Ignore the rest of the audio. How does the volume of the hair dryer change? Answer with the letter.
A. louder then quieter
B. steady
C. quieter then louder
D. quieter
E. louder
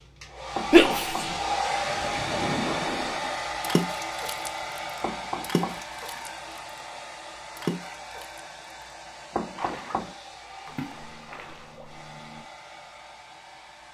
D.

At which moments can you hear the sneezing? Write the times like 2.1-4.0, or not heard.
0.7-1.4.